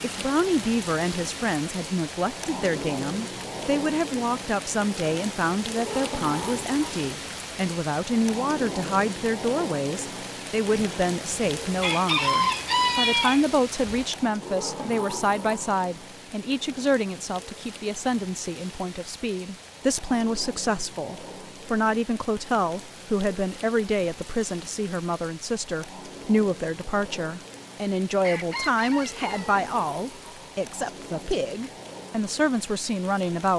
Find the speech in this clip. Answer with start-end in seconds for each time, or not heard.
0.0-33.5.